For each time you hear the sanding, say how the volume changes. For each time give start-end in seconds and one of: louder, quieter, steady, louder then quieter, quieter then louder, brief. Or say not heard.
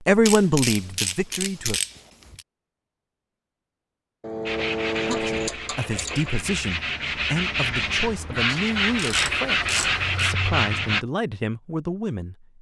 4.5-11.1 louder.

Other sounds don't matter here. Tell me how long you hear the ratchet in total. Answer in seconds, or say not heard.
6 s.